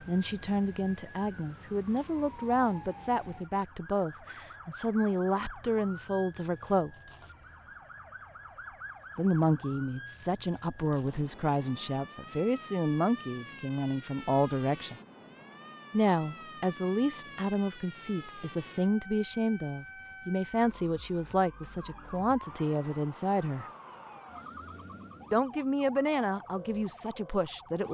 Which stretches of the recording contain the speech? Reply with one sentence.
You can hear the speech from 0.1 to 6.9 s, from 9.2 to 14.9 s, from 15.9 to 23.6 s and from 25.3 to 27.8 s.